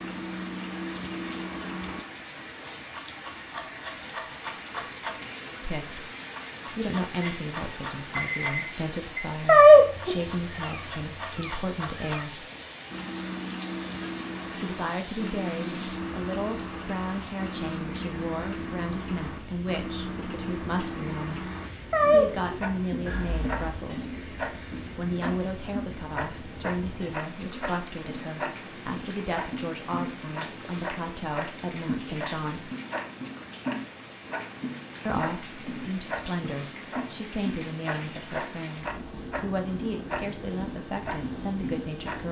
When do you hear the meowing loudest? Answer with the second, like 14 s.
10 s.